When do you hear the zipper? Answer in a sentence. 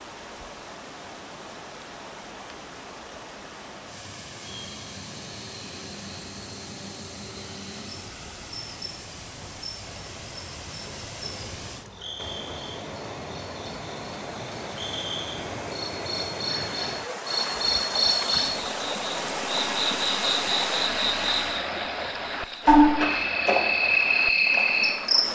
You can't hear the zipper here.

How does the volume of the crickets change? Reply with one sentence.
The loudness of the crickets goes up.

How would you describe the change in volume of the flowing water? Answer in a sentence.
The loudness of the flowing water goes up.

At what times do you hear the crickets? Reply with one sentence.
You can hear the crickets from 4.4 to 25.2 s.